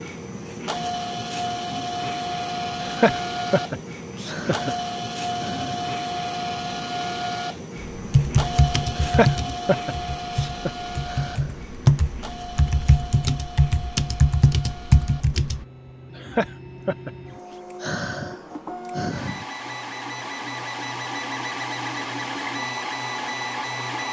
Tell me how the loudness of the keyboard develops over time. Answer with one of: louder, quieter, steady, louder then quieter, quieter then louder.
quieter then louder.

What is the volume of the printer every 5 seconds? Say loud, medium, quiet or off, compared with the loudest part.
loud, loud, medium, medium, loud.